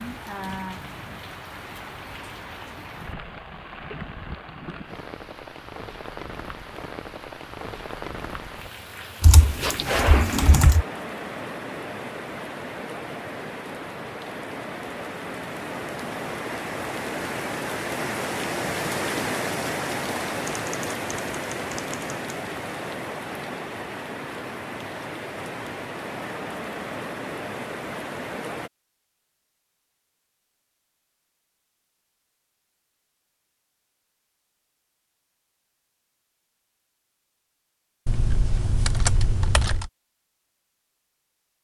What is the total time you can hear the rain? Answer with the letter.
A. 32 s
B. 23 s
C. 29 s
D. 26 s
C.